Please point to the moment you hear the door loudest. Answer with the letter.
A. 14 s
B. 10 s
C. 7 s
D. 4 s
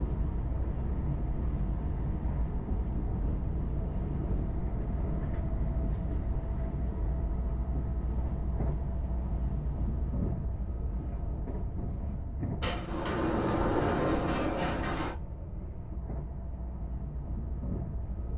A.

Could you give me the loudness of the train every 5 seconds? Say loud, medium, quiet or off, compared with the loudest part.
loud, loud, loud, medium.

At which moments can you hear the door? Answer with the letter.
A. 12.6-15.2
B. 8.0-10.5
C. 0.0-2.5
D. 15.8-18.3
A.